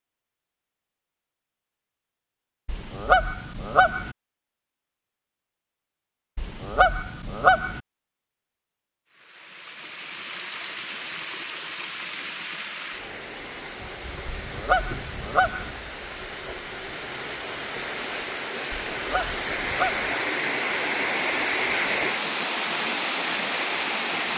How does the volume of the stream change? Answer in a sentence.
The volume of the stream goes up.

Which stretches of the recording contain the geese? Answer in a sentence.
You can hear the geese from 2.6 to 4.2 s, from 6.3 to 7.8 s, from 14.2 to 15.8 s and from 18.9 to 20.1 s.